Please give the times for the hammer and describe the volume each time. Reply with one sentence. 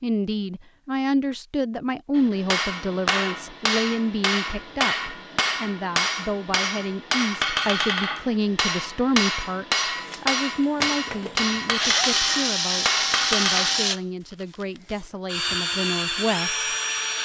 You can hear the hammer from 2.1 to 13.9 s, at a steady volume.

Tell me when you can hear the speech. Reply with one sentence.
You can hear the speech from 0.0 to 16.6 s.